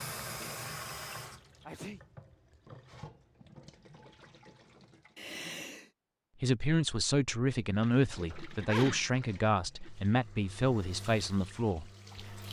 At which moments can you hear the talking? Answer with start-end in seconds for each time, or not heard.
6.4-12.4.